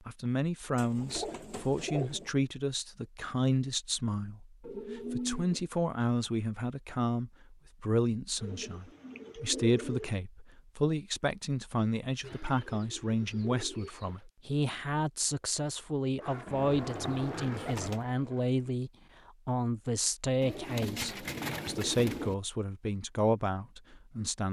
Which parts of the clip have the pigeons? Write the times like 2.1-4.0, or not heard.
0.8-2.3, 4.6-5.6, 8.4-10.2, 12.2-14.2, 16.4-18.1, 20.4-22.4.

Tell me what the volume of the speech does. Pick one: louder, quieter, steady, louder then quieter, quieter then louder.
steady.